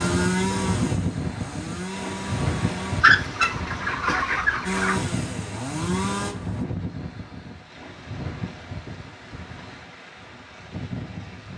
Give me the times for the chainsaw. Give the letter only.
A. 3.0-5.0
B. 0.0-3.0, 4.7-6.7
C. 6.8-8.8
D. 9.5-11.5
B.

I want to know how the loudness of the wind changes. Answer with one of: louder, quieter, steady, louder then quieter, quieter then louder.
quieter.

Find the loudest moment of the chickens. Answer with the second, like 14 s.
3 s.